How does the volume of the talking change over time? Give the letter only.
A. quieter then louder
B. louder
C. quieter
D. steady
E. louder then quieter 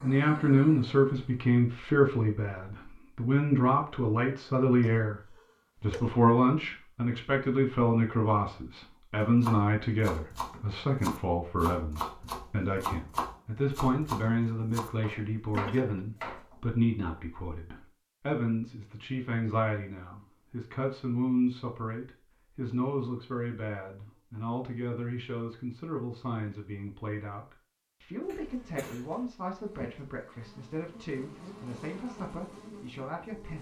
C.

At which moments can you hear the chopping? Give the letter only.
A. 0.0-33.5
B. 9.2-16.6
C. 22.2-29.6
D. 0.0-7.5
B.